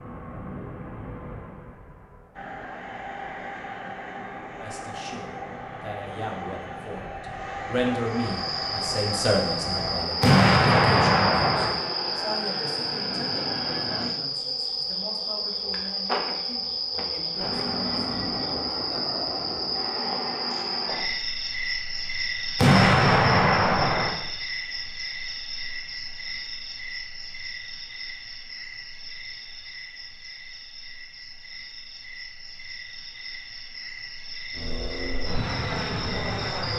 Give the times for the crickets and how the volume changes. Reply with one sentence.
The crickets can be heard from 8.1 to 36.7 s, getting quieter.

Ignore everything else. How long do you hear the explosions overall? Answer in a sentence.
You can hear the explosions for 3 seconds altogether.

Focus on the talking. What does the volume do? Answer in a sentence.
The volume of the talking goes up, then down.